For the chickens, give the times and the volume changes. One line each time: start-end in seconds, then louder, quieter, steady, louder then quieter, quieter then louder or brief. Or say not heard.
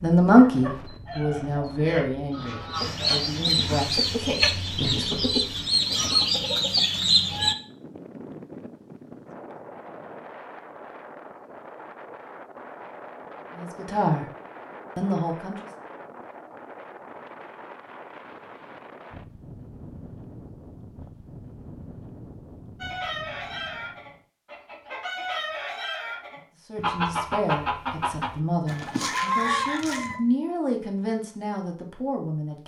0.5-7.5 louder
22.8-30.2 louder.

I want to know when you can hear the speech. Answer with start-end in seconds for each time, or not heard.
0.0-5.2, 13.6-14.2, 14.9-15.7, 26.7-32.6.